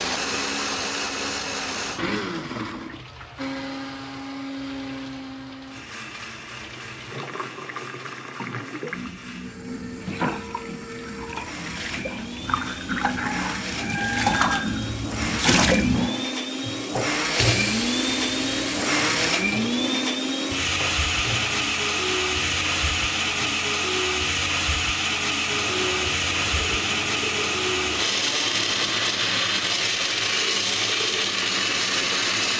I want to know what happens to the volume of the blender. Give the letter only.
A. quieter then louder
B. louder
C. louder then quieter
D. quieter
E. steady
A.